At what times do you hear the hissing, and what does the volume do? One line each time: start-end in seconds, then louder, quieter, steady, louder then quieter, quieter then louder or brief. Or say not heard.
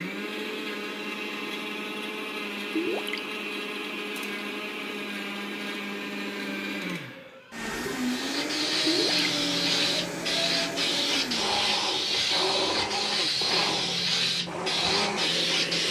8.0-15.8 steady.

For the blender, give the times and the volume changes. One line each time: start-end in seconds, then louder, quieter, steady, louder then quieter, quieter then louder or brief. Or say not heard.
0.0-15.8 steady.